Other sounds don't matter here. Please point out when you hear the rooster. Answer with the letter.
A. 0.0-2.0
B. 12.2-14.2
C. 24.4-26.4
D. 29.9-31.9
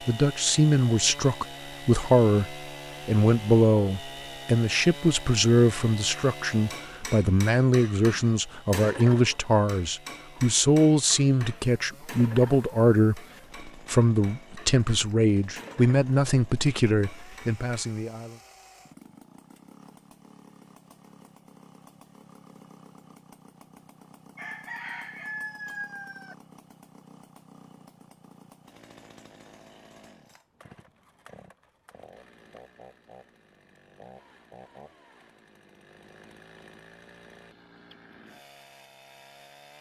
C.